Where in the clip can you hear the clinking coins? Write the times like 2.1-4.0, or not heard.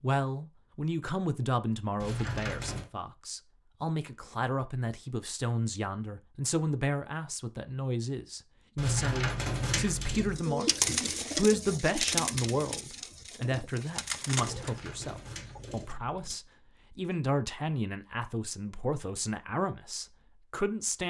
2.0-2.9, 8.8-10.4, 14.4-16.4.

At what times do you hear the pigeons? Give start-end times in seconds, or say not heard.
10.2-15.9.